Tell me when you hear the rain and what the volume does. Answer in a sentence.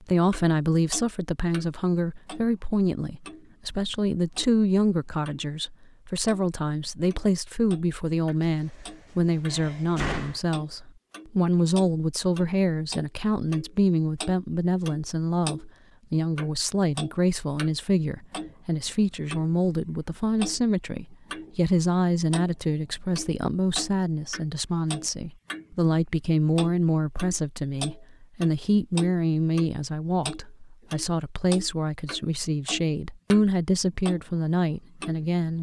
You can't hear the rain here.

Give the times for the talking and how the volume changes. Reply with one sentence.
You can hear the talking from 0.1 to 35.5 s, at a steady volume.